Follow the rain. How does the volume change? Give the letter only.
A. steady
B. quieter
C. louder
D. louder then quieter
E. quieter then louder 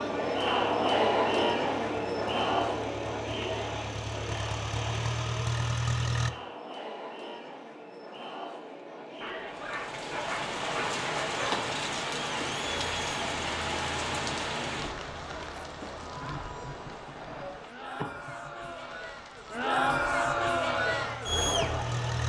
B.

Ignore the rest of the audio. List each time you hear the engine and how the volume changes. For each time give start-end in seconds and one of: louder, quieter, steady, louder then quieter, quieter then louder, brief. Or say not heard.
0.0-6.3 louder
20.4-22.2 brief.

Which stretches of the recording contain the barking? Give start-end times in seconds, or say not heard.
9.2-11.7.